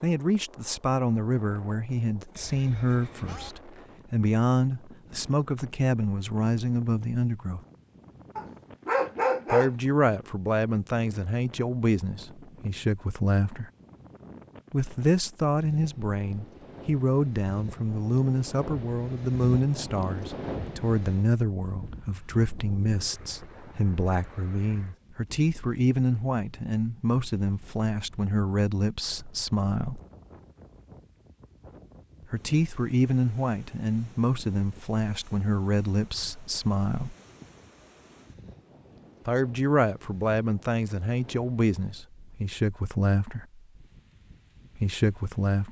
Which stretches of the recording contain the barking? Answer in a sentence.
You can hear the barking from 8.3 to 9.7 s.